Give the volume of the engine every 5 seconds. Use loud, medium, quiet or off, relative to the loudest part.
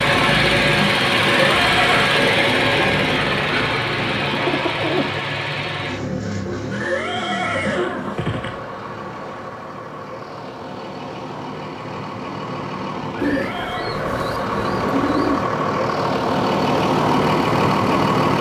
loud, medium, medium, loud.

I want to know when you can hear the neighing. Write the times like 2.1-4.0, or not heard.
1.4-2.1, 6.7-8.6, 13.2-14.0.